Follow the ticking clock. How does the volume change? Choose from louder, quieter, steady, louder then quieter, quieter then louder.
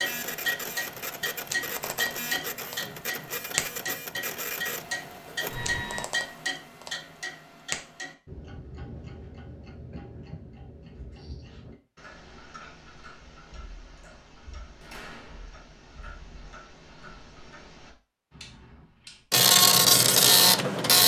quieter.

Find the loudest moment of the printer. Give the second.
20 s.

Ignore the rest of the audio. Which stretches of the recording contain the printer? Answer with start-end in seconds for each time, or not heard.
0.0-6.0, 19.3-21.0.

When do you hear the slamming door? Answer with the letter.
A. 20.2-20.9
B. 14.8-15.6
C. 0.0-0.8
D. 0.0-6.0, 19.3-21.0
B.